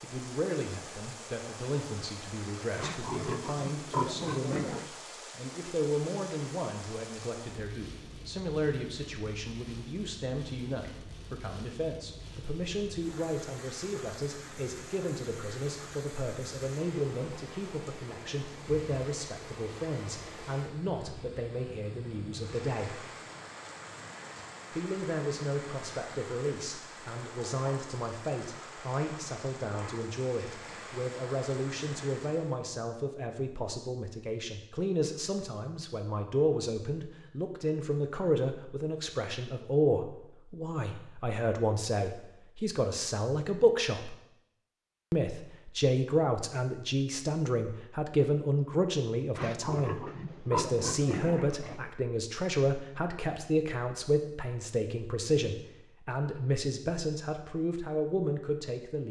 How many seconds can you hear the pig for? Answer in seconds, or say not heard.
5 s.